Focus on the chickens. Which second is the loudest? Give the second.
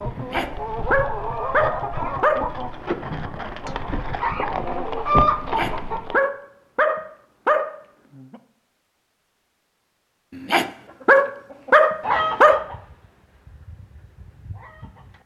5 s.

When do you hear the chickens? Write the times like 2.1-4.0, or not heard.
0.0-6.2, 10.7-15.2.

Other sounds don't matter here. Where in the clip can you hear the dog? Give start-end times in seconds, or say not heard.
0.1-2.5, 5.4-8.3, 10.3-12.6.